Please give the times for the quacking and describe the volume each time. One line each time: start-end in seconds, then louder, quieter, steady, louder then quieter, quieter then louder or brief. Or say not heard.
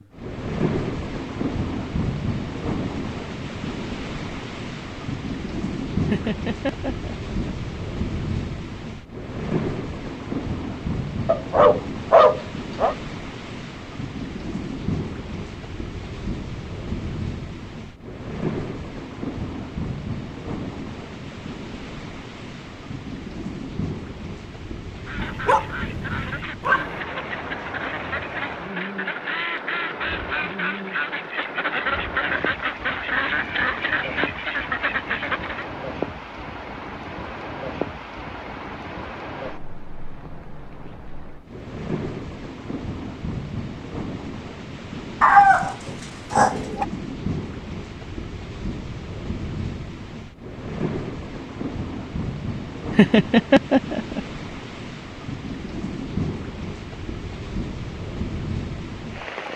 24.9-35.6 louder.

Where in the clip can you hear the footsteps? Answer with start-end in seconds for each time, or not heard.
not heard.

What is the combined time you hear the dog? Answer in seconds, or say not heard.
5 s.